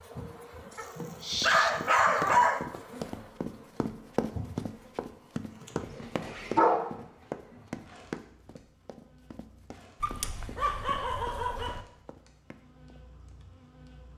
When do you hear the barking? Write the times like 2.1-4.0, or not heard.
0.8-2.6, 5.8-7.0, 10.0-11.8.